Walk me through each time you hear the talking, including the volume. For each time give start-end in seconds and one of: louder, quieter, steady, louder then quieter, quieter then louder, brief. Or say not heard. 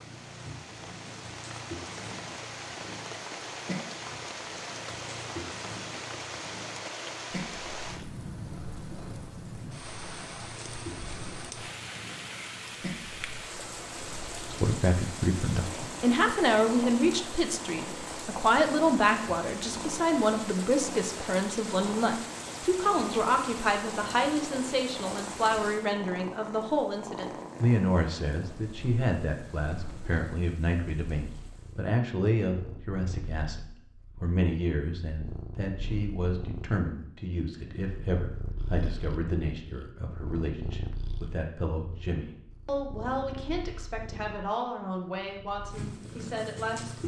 14.6-47.0 quieter.